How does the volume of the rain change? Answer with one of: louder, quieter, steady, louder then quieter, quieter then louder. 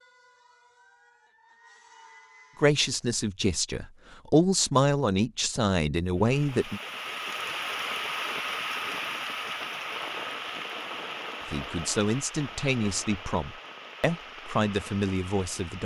quieter.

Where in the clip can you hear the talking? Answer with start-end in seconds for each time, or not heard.
2.5-6.8, 11.4-15.8.